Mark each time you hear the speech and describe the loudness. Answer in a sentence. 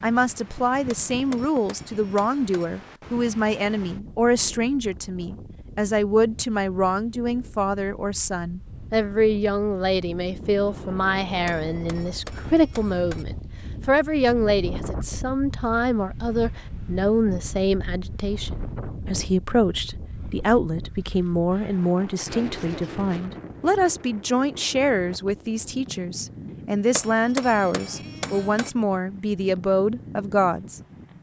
You can hear the speech from 0.0 to 30.8 s, at a steady volume.